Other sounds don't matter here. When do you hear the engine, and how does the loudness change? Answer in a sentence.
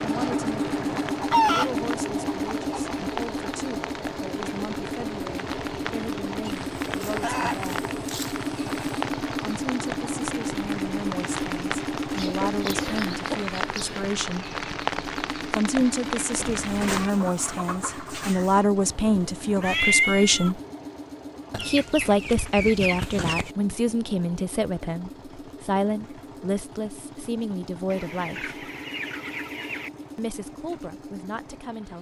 The engine can be heard from 0.0 to 31.9 s, getting quieter.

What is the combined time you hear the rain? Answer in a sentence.
You can hear the rain for 17 seconds altogether.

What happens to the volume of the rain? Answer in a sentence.
The loudness of the rain goes up.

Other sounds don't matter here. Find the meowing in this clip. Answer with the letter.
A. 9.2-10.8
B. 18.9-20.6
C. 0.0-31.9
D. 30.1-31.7
B.